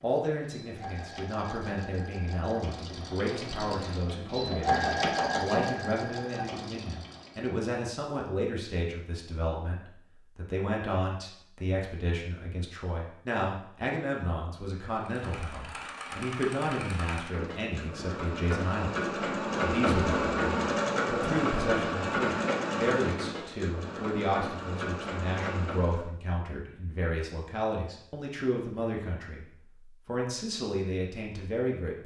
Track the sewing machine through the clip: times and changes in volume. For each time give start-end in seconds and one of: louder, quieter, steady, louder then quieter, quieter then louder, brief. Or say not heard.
0.0-7.6 louder then quieter
14.9-26.1 louder then quieter.